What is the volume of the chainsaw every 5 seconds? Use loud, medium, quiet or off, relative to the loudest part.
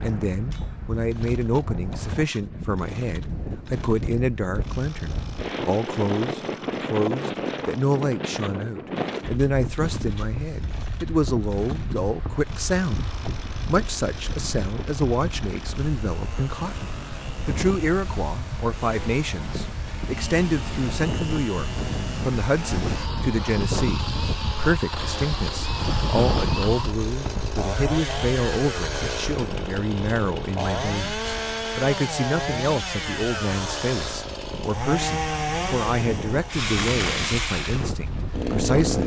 quiet, quiet, quiet, quiet, medium, loud, loud, loud.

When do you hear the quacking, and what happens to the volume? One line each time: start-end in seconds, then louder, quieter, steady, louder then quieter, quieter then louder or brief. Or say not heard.
not heard.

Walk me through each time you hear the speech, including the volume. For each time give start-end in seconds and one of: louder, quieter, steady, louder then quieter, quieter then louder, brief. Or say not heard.
0.0-13.1 steady
13.7-39.0 steady.